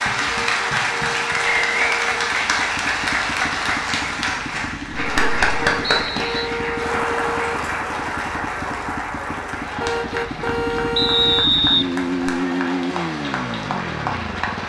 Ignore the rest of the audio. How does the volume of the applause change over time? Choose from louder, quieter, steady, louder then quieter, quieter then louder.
quieter.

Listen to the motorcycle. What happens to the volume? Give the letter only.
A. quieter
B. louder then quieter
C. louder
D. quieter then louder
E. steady
C.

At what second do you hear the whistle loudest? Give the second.
12 s.